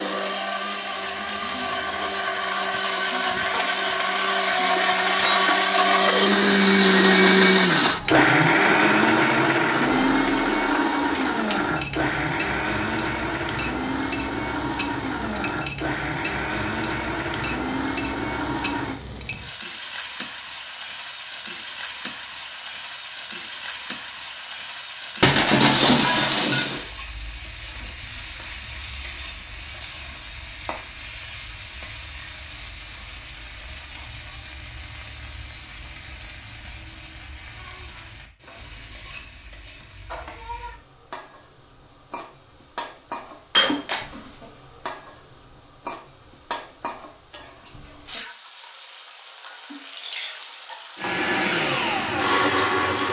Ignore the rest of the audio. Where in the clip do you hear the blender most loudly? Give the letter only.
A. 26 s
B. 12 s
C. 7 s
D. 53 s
C.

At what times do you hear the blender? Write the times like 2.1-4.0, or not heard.
0.0-19.0, 51.0-53.0.